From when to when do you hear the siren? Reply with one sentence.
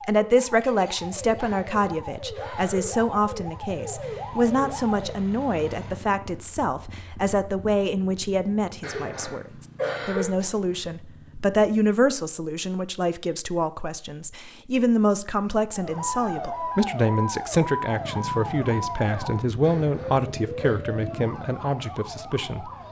You can hear the siren from 0.0 to 5.2 s and from 15.7 to 22.8 s.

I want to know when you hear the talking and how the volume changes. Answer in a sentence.
The talking can be heard from 0.1 to 22.7 s, at a steady volume.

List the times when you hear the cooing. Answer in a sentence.
The cooing can't be heard in this clip.